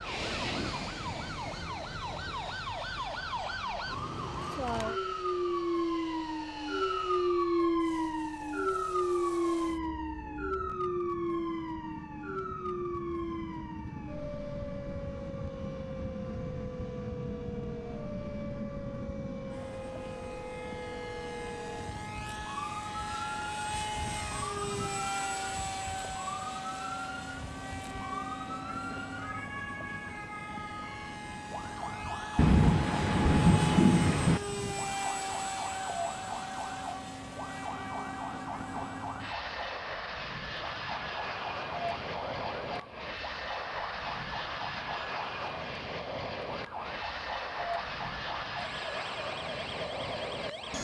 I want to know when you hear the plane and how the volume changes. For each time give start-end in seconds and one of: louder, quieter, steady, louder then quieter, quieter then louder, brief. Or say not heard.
0.0-50.8 louder.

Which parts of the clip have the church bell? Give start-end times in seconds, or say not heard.
not heard.